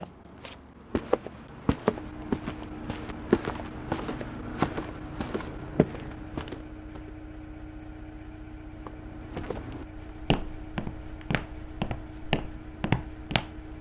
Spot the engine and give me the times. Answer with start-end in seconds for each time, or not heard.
1.9-13.7.